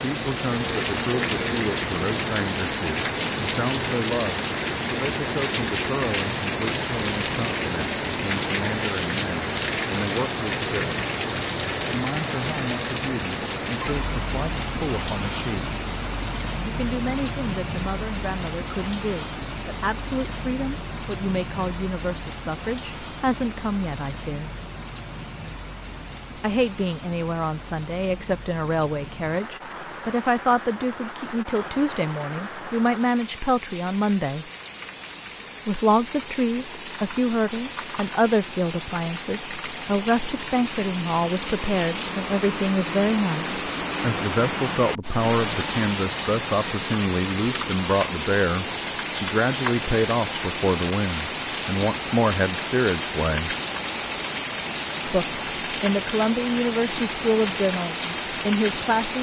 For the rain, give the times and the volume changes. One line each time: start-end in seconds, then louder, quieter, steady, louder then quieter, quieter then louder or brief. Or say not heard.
0.0-59.1 quieter then louder.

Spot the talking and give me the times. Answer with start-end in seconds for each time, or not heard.
0.0-10.9, 11.8-16.0, 16.6-24.5, 26.4-34.5, 35.6-53.5, 55.0-59.1.